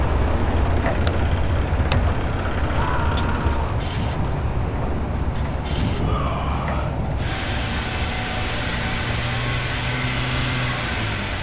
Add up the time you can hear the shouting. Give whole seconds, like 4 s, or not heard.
2 s.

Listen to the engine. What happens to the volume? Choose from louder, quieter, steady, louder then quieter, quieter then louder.
louder.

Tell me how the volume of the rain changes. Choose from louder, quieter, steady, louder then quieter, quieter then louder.
quieter.